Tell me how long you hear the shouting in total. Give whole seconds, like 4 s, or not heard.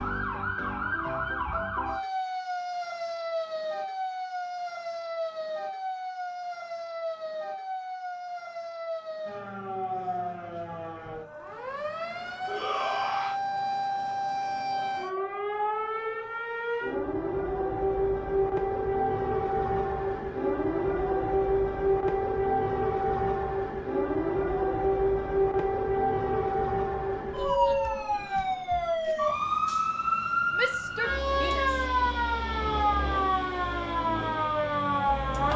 2 s.